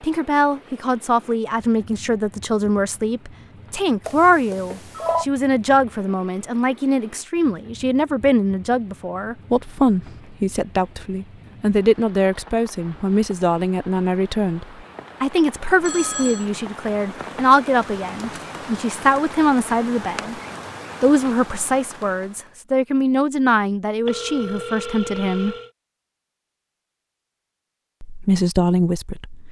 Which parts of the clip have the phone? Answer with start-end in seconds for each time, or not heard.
4.0-5.2, 15.8-16.4, 24.1-25.7.